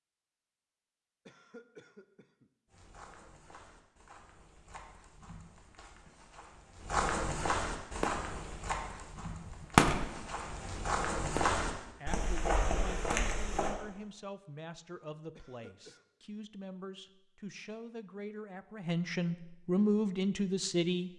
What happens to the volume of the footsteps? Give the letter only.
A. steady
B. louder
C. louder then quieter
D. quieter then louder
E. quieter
B.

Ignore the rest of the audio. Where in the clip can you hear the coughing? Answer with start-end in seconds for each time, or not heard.
1.2-2.5, 15.3-16.1.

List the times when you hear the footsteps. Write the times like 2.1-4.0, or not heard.
2.6-13.8.